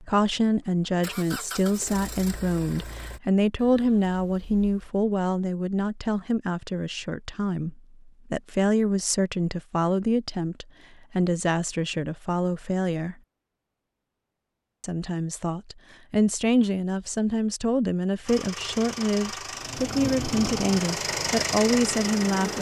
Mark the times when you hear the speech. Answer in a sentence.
You can hear the speech from 0.0 to 13.2 s and from 14.8 to 22.5 s.